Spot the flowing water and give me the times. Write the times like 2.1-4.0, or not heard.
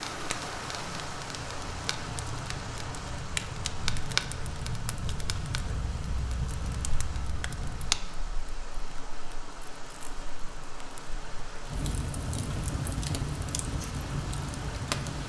0.0-15.2.